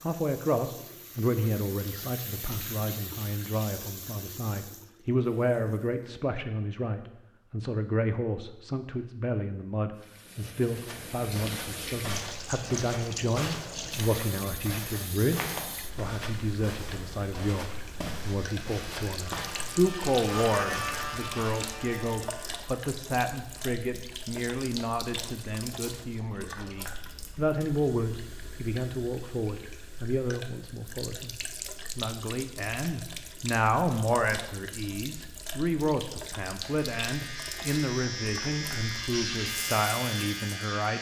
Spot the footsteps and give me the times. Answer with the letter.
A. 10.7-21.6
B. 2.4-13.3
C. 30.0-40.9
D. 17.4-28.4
A.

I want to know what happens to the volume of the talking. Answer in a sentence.
The volume of the talking stays about the same.